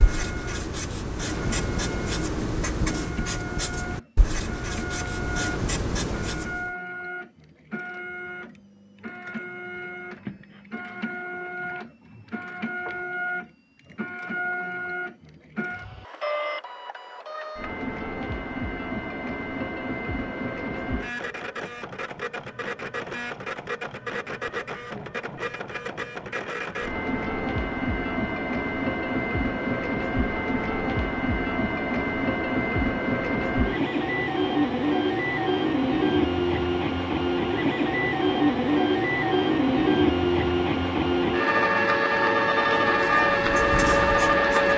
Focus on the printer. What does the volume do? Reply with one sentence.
The loudness of the printer goes up.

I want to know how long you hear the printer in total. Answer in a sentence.
You can hear the printer for 45 seconds altogether.